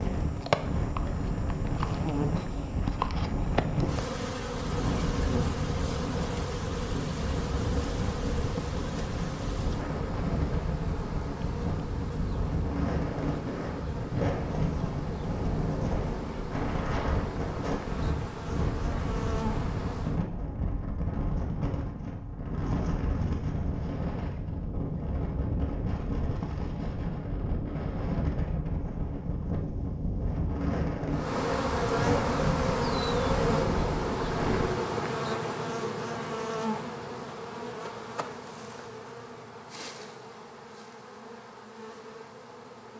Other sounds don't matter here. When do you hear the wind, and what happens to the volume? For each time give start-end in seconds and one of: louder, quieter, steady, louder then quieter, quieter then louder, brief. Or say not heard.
0.0-34.6 steady.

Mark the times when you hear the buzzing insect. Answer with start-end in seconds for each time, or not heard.
0.0-20.2, 31.1-42.9.